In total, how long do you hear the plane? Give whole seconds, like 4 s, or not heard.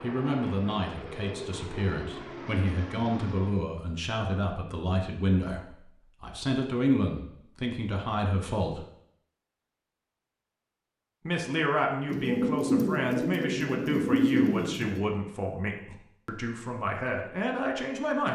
4 s.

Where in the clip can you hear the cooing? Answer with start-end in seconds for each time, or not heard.
12.1-15.0.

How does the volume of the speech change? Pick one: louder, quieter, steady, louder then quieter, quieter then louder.
steady.